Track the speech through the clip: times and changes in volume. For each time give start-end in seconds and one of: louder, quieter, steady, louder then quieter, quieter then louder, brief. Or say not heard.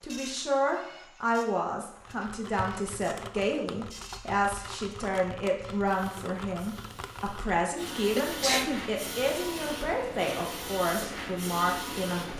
0.0-12.3 steady.